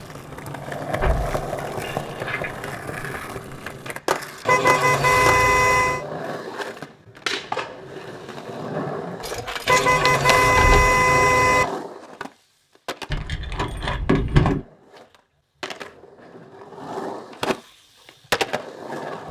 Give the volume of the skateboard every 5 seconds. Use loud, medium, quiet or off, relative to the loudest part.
loud, loud, medium, loud.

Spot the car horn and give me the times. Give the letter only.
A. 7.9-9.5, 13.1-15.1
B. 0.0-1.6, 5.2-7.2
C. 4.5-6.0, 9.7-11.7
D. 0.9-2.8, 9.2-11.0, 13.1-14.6
C.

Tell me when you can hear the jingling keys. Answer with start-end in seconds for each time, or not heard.
0.9-2.8, 9.2-11.0, 13.1-14.6.